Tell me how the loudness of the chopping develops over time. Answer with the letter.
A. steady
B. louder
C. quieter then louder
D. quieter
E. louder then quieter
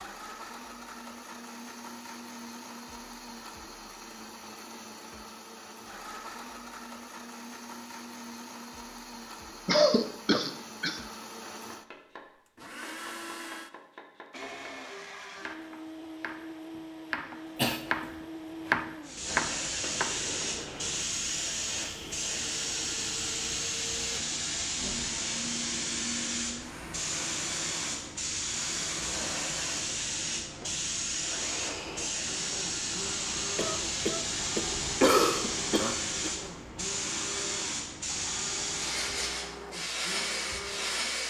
B.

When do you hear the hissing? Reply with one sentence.
The hissing can be heard from 19.0 to 41.2 s.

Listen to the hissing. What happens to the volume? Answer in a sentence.
The volume of the hissing stays about the same.